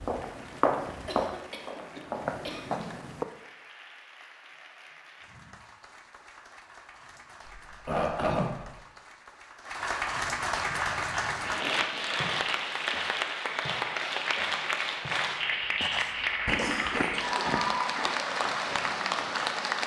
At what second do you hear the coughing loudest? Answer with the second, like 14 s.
8 s.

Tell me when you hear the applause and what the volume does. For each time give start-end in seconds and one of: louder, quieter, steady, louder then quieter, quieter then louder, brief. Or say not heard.
0.0-19.8 louder.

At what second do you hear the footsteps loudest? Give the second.
1 s.